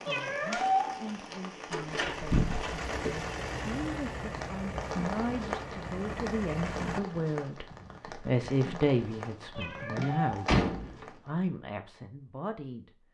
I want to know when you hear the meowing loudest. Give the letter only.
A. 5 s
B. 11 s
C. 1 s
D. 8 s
C.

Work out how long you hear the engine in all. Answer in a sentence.
The engine can be heard for 5 seconds in total.